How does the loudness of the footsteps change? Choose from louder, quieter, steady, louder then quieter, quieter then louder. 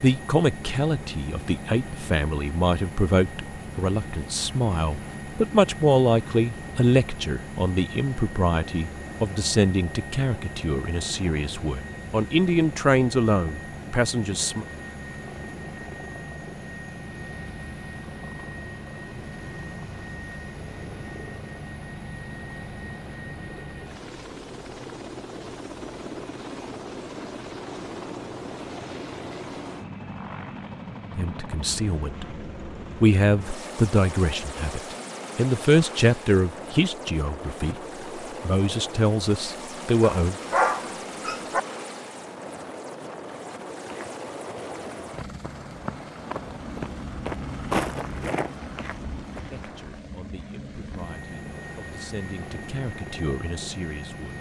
louder then quieter.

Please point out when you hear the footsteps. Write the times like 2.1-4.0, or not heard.
43.8-50.0.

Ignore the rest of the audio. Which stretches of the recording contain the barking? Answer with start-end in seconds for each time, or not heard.
40.0-41.6.